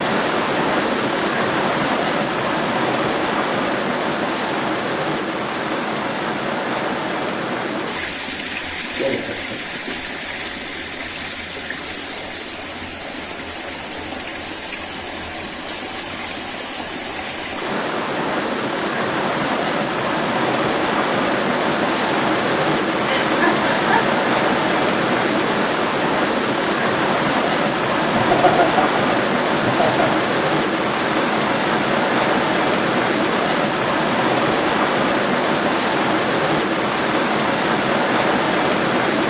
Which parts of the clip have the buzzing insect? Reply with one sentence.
The buzzing insect can't be heard in this clip.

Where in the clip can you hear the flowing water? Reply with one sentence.
You can hear the flowing water from 0.0 to 39.2 s.